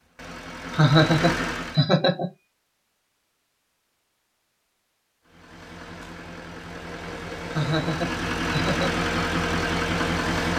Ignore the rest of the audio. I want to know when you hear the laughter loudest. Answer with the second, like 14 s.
1 s.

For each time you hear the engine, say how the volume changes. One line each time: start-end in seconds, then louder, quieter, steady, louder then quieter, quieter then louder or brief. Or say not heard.
0.0-1.9 brief
5.2-10.5 louder.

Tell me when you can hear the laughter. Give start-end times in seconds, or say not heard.
0.8-2.3, 7.5-9.1.